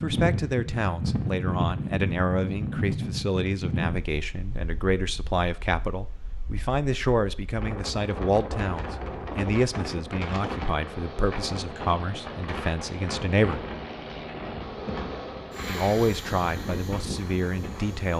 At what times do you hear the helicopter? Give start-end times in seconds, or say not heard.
10.8-18.1.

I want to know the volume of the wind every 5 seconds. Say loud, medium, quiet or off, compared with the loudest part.
loud, medium, medium, medium.